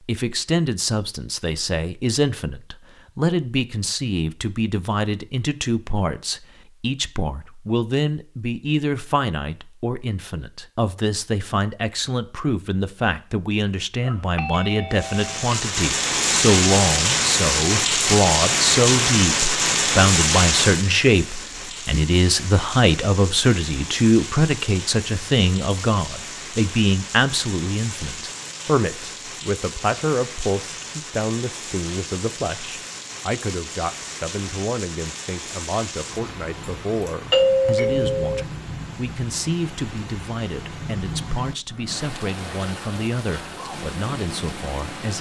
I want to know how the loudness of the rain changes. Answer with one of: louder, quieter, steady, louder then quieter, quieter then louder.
quieter.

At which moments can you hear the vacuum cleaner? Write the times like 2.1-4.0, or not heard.
not heard.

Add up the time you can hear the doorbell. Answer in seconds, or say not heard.
3 s.